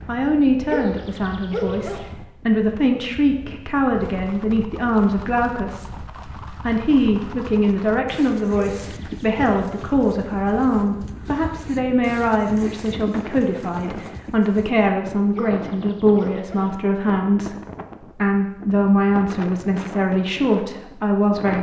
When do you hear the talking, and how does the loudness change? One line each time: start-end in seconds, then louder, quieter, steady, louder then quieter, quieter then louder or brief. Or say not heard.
0.1-21.5 steady.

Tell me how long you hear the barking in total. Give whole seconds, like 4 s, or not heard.
4 s.